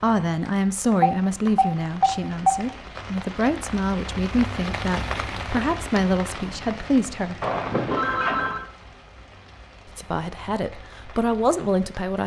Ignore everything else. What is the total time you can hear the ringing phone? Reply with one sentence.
You can hear the ringing phone for 3 seconds altogether.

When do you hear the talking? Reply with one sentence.
The talking can be heard from 0.0 to 7.3 s and from 9.8 to 12.2 s.